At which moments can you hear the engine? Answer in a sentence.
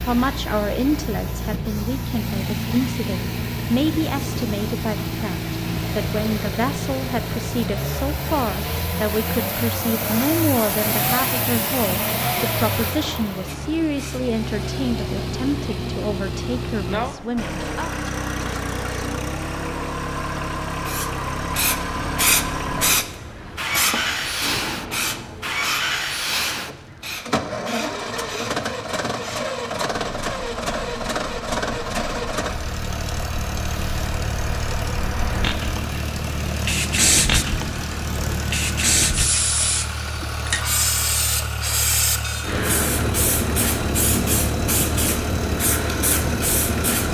The engine can be heard from 0.0 to 47.1 s.